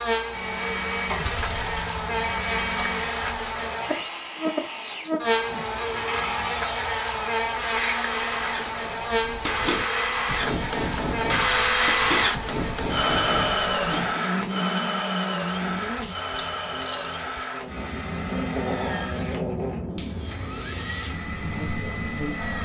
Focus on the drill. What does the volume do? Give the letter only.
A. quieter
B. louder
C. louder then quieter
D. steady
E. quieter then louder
C.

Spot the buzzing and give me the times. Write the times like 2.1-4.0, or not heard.
0.0-22.5.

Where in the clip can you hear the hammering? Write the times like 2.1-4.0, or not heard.
8.2-14.2.